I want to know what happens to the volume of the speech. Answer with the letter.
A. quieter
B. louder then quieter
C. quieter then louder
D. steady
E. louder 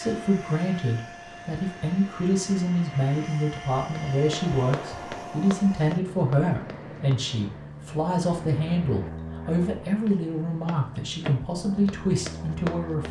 D.